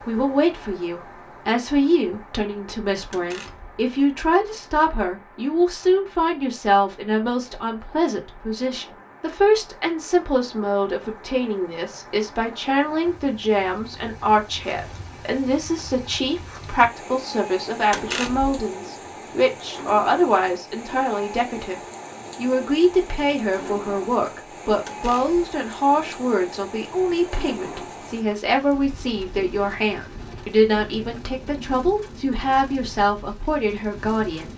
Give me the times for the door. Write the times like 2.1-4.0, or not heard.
3.1-3.7, 17.9-18.6, 24.9-25.4.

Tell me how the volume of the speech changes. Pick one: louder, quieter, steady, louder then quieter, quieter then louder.
steady.